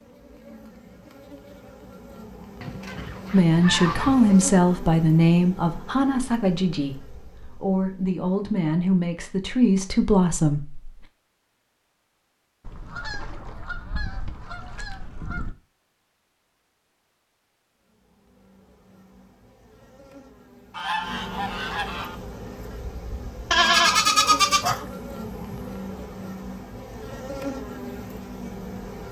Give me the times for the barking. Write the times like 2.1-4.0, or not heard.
not heard.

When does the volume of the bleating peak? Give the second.
24 s.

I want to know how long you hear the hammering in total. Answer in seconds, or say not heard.
not heard.